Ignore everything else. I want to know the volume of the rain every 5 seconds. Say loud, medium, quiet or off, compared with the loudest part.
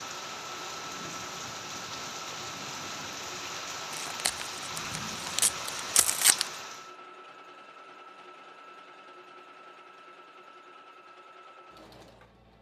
loud, loud, off.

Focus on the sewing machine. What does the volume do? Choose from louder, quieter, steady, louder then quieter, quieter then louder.
quieter.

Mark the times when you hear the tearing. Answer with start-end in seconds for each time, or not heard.
3.9-6.5.